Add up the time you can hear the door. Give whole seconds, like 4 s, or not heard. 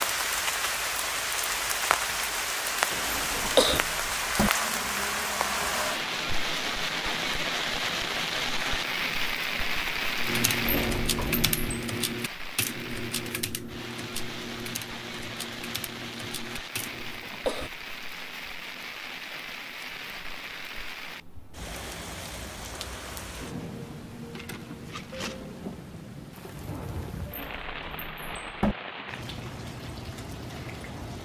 4 s.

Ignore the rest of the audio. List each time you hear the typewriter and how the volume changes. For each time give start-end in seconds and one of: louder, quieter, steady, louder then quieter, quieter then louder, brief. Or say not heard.
10.2-17.2 quieter.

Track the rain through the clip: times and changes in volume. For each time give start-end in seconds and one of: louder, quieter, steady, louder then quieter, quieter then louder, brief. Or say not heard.
0.0-31.1 quieter.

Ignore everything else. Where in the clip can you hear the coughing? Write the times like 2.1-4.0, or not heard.
2.9-3.8, 16.8-17.7.